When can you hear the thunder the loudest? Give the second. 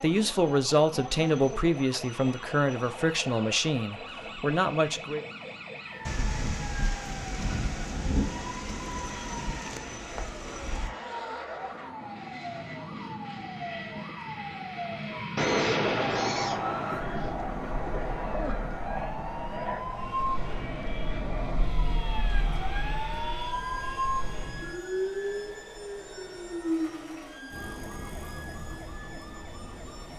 16 s.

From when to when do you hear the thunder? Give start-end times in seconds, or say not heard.
6.0-10.9, 15.3-18.6.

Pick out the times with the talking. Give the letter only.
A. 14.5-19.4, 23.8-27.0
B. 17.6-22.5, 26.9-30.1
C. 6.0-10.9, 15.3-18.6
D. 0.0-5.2
D.